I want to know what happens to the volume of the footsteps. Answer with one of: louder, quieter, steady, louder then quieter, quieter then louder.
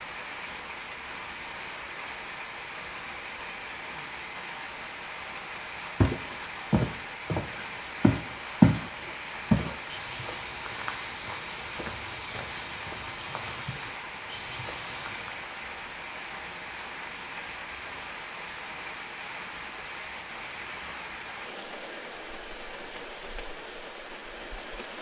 louder then quieter.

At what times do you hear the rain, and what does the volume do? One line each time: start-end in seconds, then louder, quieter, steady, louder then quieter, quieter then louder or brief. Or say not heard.
0.0-24.9 steady.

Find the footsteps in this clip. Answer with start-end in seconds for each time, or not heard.
6.0-15.3.